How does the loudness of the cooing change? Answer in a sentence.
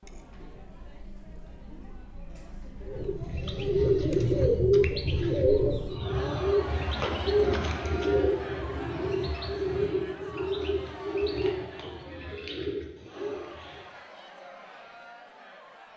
The loudness of the cooing goes down.